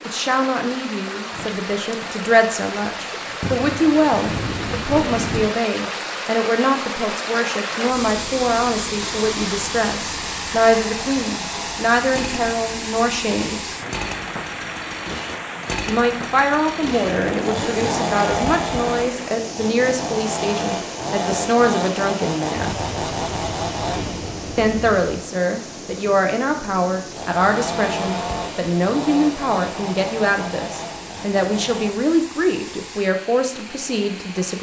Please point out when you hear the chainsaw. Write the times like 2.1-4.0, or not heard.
9.0-31.9.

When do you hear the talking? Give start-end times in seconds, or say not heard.
0.1-13.7, 15.8-22.8, 24.6-34.5.